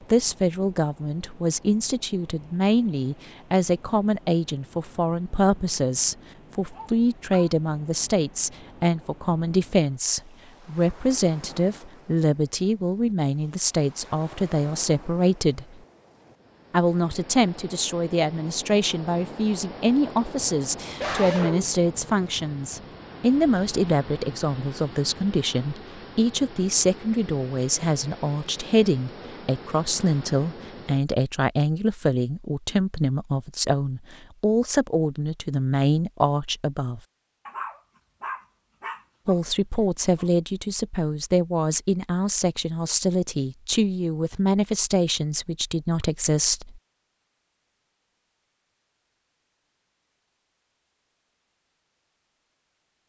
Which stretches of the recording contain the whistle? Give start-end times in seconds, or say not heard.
not heard.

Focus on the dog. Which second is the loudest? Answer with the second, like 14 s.
21 s.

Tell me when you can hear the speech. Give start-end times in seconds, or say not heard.
0.1-15.8, 16.7-37.0, 39.2-46.8.